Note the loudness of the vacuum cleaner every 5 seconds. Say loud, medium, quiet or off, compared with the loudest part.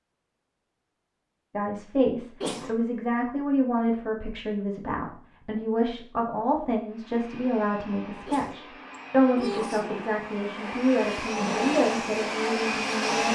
off, quiet, loud.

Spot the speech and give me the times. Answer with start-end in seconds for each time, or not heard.
1.5-13.3.